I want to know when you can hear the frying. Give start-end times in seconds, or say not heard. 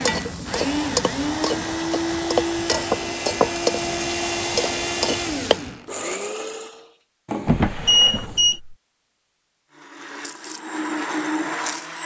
0.0-5.6.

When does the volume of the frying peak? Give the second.
3 s.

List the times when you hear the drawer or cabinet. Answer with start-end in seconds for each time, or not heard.
7.5-8.8.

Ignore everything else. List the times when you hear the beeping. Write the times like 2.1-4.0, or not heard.
7.2-8.6.